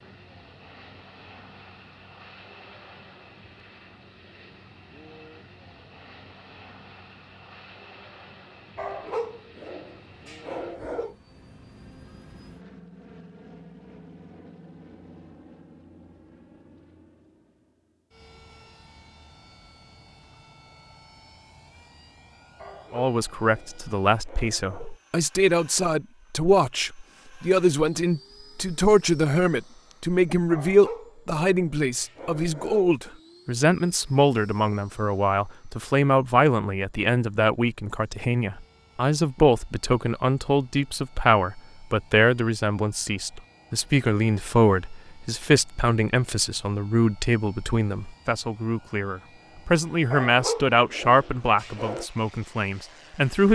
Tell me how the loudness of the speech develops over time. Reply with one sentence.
The loudness of the speech stays about the same.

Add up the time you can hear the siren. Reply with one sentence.
The siren can't be heard in this clip.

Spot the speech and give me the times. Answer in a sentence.
You can hear the speech from 22.9 to 53.5 s.